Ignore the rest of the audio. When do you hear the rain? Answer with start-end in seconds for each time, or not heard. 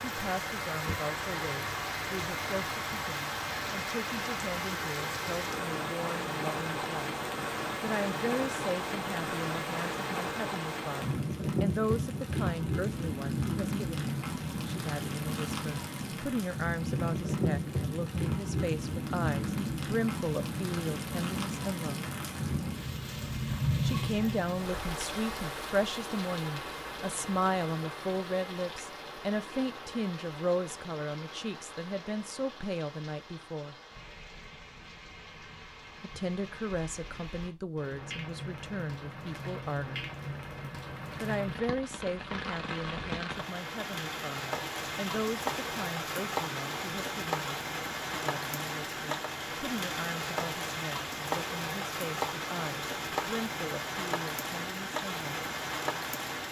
0.0-56.4.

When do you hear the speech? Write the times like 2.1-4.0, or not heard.
0.0-7.2, 7.8-22.0, 23.8-33.8, 36.0-40.0, 41.2-55.4.